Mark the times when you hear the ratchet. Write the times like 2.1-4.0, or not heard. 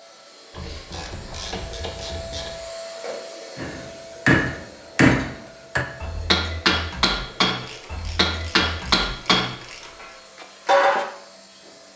0.5-2.5, 7.6-10.2.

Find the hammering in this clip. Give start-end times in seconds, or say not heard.
3.5-11.1.